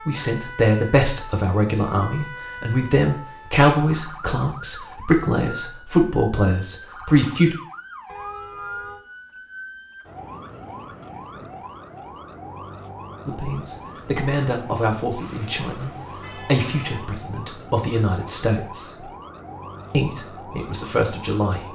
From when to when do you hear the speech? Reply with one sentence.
The speech can be heard from 0.1 to 7.5 s, from 13.2 to 19.1 s and from 19.9 to 21.6 s.